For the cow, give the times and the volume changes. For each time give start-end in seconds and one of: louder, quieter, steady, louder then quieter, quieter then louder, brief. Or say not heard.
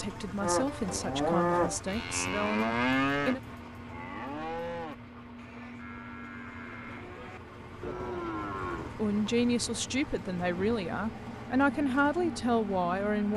0.4-8.9 quieter then louder.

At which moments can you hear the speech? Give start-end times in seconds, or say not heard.
0.0-3.4, 8.9-13.3.